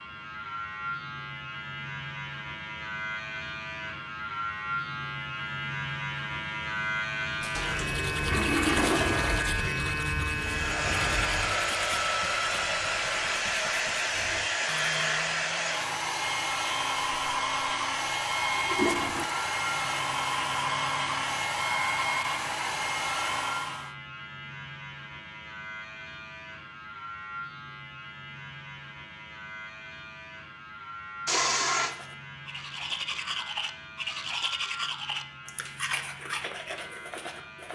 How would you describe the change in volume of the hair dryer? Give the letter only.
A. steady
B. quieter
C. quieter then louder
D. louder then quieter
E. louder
A.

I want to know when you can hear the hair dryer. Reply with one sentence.
The hair dryer can be heard from 10.3 to 23.9 s.